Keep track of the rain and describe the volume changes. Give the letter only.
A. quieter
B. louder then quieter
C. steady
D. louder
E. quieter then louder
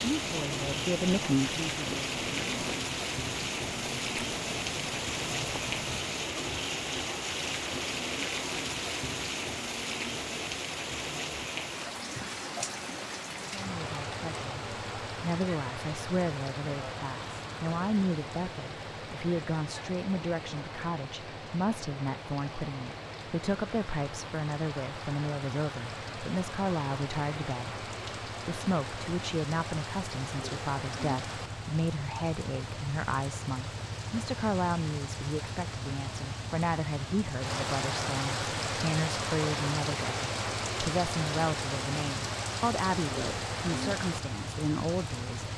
E.